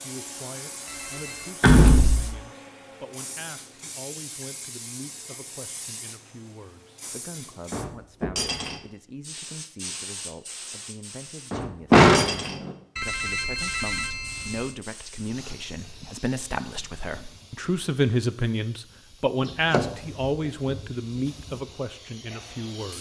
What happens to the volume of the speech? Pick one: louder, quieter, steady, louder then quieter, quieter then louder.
louder.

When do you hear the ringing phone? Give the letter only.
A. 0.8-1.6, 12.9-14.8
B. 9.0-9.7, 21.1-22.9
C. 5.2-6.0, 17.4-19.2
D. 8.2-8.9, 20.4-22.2
A.